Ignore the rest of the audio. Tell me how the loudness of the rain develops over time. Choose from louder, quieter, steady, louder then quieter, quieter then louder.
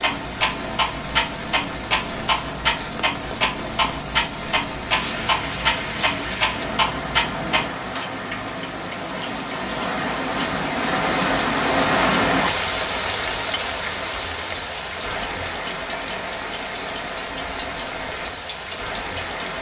louder then quieter.